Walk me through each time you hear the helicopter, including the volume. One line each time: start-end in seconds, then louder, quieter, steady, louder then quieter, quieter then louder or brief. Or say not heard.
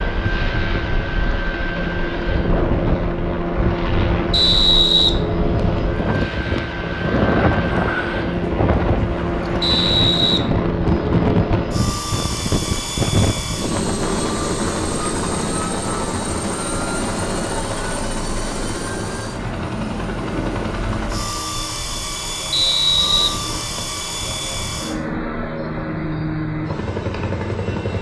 0.0-27.9 steady.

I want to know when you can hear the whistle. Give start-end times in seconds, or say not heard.
4.3-5.8, 9.6-11.1, 22.5-24.0.